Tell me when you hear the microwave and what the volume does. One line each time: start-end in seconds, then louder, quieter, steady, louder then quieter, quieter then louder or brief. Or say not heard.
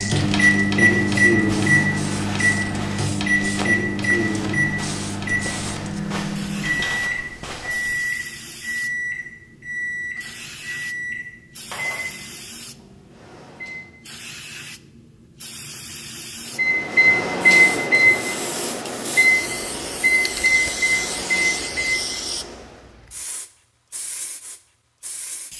0.0-13.9 quieter
16.6-22.8 quieter.